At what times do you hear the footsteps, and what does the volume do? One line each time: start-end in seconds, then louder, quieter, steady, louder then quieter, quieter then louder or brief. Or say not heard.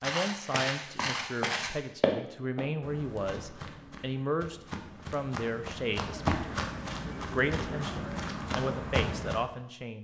0.0-9.4 quieter then louder.